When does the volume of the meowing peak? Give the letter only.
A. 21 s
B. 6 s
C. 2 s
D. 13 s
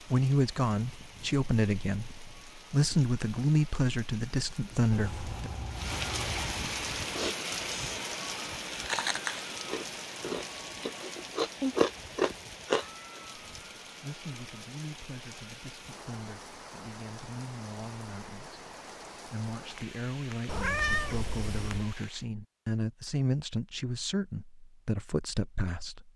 A.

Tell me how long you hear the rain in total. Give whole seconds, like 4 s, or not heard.
22 s.